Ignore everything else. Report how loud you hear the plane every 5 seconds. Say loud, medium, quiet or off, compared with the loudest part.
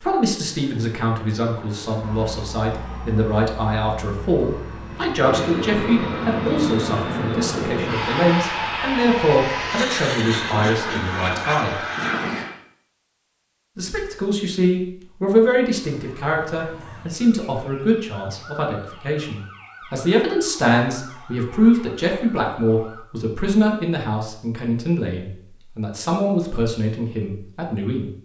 quiet, loud, loud, off, off, off.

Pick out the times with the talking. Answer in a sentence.
The talking can be heard from 0.0 to 11.8 s and from 13.8 to 28.1 s.